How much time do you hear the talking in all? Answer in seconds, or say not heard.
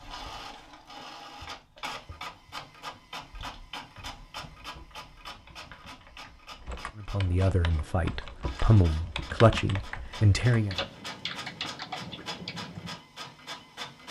4 s.